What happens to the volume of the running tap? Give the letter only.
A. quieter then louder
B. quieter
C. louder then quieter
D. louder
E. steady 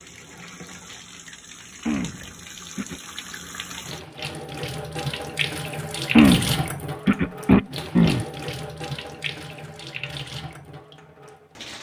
C.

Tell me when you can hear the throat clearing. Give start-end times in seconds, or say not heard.
1.9-3.0, 6.1-8.2.